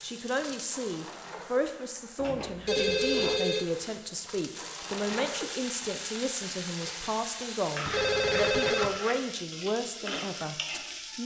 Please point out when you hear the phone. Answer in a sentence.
You can hear the phone from 2.6 to 3.6 s and from 7.9 to 8.9 s.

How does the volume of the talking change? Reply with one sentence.
The loudness of the talking stays about the same.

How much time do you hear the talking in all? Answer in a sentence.
You can hear the talking for 11 seconds altogether.